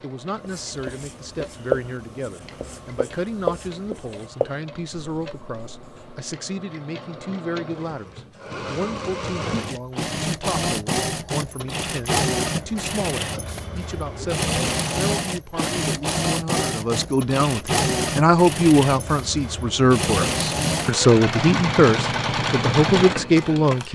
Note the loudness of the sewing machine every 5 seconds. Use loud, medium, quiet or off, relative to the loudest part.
quiet, medium, loud, loud, loud.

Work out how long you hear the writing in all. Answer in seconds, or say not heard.
6 s.